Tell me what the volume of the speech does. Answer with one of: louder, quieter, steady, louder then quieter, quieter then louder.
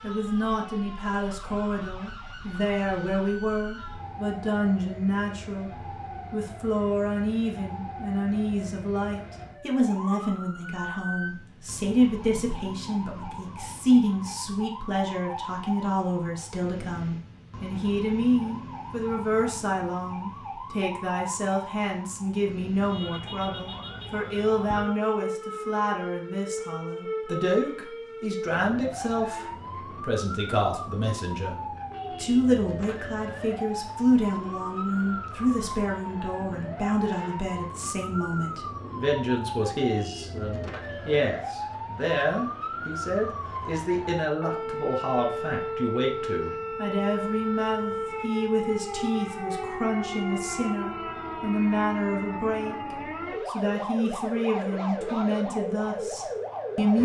steady.